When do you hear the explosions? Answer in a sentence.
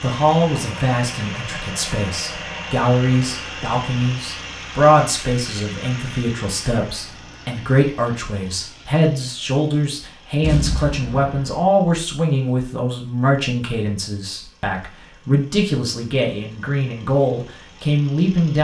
The explosions can be heard from 10.4 to 11.7 s.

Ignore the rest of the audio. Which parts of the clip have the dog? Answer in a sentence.
The dog can't be heard in this clip.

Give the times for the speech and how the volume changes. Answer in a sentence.
The speech can be heard from 0.0 to 18.6 s, at a steady volume.